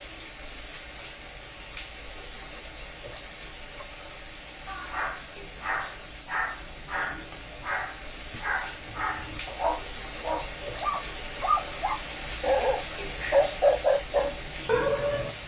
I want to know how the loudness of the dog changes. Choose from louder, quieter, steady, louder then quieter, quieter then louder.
louder.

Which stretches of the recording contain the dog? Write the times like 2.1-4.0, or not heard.
4.7-15.3.